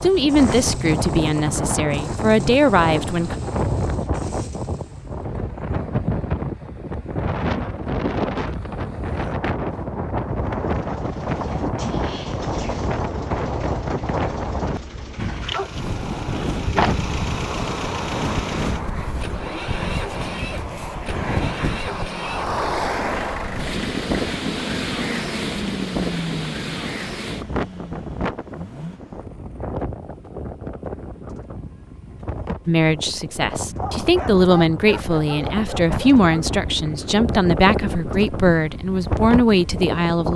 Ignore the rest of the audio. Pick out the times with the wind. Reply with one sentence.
You can hear the wind from 0.0 to 40.3 s.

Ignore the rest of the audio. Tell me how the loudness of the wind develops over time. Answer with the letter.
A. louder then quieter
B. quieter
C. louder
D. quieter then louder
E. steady
E.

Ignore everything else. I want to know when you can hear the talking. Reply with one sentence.
The talking can be heard from 0.0 to 3.4 s and from 32.6 to 40.3 s.